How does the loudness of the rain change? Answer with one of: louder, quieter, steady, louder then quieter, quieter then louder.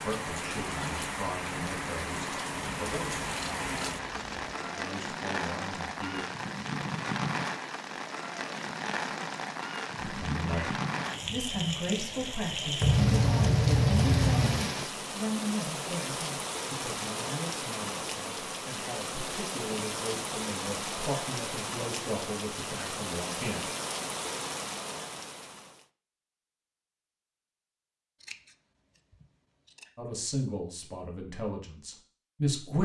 steady.